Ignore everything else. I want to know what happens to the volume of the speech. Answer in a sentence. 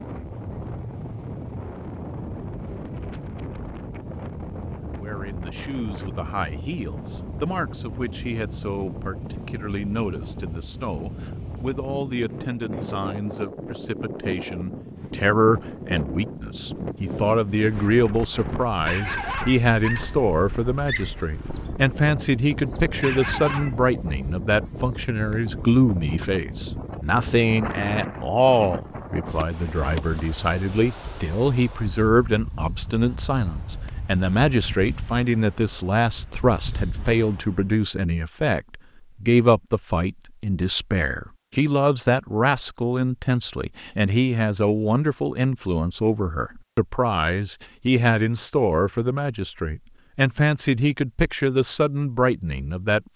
The volume of the speech goes up.